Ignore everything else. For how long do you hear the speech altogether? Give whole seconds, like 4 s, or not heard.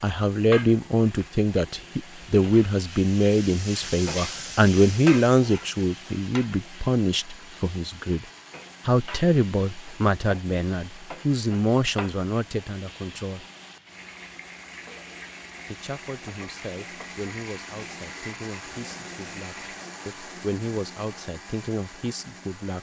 20 s.